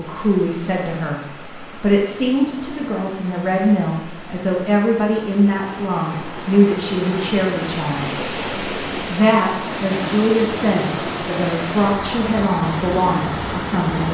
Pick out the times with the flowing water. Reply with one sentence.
You can hear the flowing water from 0.0 to 14.1 s.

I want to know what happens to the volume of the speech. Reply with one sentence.
The volume of the speech stays about the same.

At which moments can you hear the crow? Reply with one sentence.
You can't hear the crow here.